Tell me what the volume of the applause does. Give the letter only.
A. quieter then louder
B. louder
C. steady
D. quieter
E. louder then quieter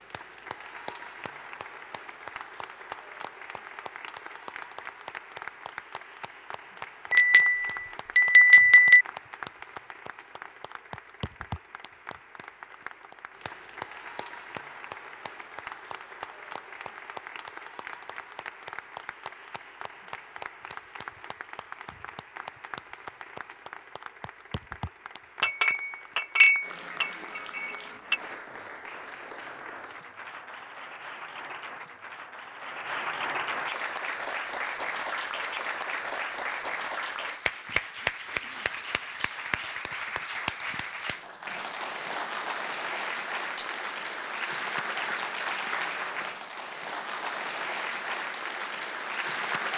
B.